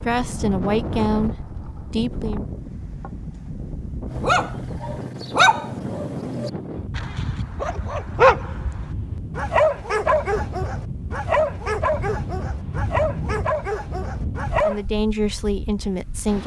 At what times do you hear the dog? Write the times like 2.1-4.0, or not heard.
4.1-14.8.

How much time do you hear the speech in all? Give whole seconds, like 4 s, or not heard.
4 s.